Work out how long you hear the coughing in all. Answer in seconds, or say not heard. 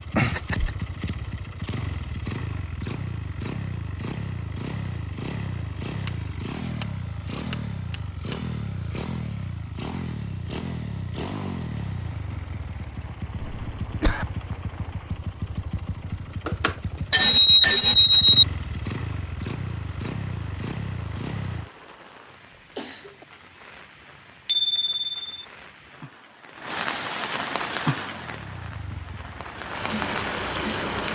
2 s.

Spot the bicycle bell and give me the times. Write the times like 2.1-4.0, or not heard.
6.0-8.5, 16.4-18.4, 24.4-25.3.